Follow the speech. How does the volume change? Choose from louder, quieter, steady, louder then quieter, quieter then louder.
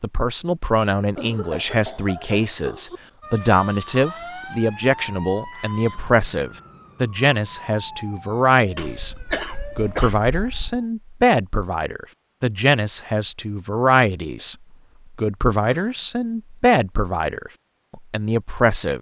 steady.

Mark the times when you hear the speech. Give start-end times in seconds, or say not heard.
0.0-9.2, 9.8-14.6, 15.2-18.9.